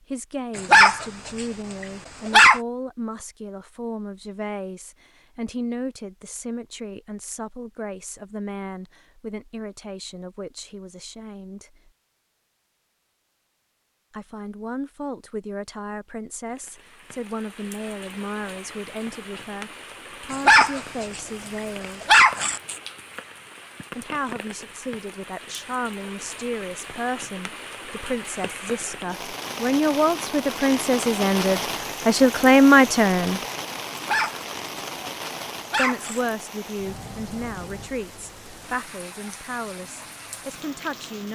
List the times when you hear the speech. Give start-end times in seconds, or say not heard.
0.0-11.9, 14.1-22.1, 23.9-33.4, 35.8-41.3.